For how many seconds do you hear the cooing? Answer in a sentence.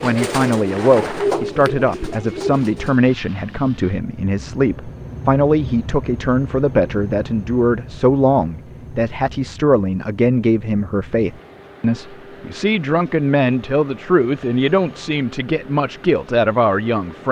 The cooing can be heard for 3 seconds in total.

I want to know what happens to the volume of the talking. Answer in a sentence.
The volume of the talking stays about the same.